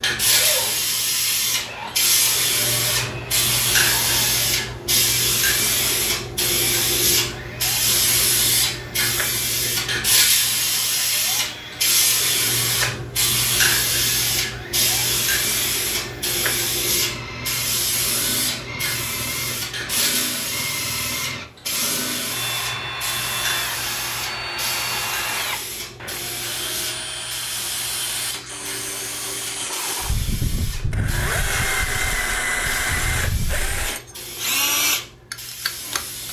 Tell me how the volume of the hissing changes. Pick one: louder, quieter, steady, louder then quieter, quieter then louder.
quieter.